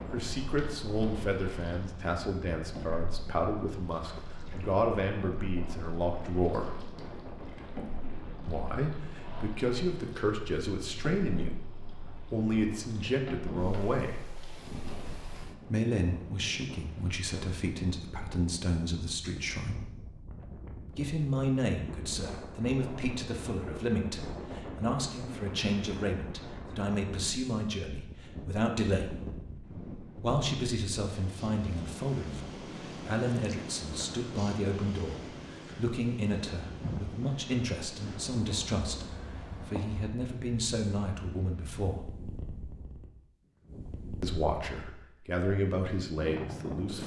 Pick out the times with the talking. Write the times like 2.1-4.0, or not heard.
0.1-6.8, 8.4-14.2, 15.7-19.9, 20.9-29.1, 30.2-42.1, 44.2-47.0.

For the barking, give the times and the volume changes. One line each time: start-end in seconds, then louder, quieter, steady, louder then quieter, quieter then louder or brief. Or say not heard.
not heard.